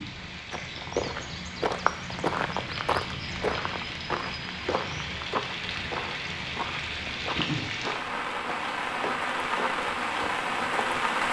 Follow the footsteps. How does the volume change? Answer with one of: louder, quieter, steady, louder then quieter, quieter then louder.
quieter.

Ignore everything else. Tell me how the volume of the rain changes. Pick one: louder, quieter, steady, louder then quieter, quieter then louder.
louder.